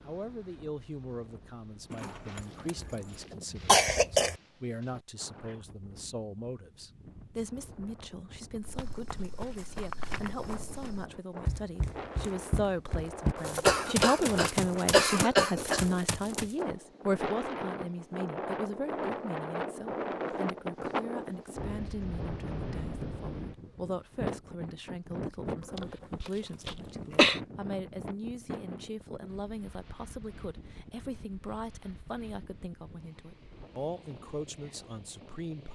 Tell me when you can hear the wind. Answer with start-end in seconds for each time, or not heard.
0.0-35.6.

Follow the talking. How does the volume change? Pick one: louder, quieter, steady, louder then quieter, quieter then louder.
louder then quieter.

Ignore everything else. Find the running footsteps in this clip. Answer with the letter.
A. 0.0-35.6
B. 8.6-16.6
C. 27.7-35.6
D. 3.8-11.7
B.